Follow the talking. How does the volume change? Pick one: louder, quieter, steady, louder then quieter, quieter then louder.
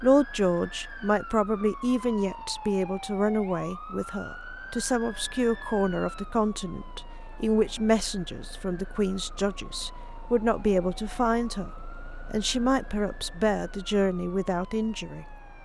steady.